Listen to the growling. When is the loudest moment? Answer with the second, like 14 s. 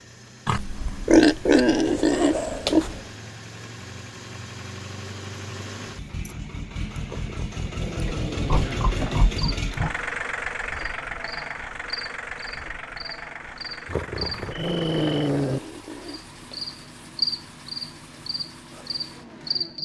15 s.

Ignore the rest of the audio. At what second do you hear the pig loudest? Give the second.
1 s.